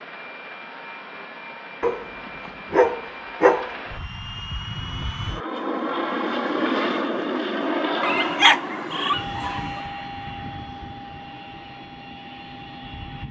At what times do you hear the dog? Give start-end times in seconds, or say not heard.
1.8-3.7, 8.0-9.8.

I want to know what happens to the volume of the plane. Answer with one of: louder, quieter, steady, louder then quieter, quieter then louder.
louder then quieter.